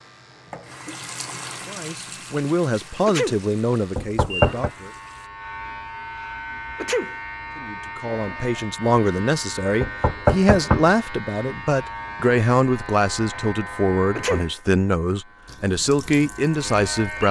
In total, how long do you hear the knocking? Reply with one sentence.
The knocking can be heard for 2 seconds in total.